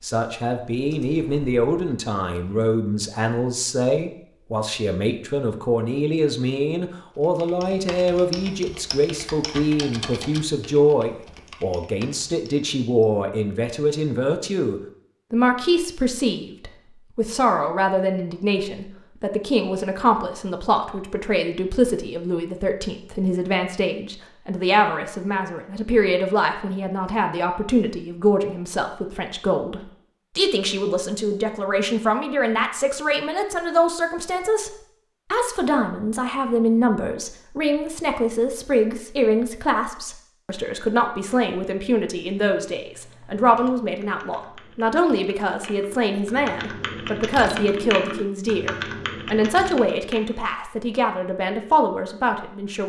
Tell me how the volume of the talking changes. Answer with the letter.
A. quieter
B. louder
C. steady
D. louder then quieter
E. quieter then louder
C.